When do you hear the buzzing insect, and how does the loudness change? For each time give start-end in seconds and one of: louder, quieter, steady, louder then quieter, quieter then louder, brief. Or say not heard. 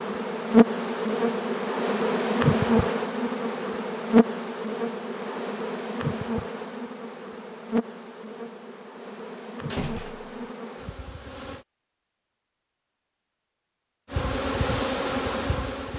0.0-11.7 quieter
14.1-15.9 brief.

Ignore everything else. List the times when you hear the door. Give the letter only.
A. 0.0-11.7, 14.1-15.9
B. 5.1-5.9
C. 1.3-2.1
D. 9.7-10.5
D.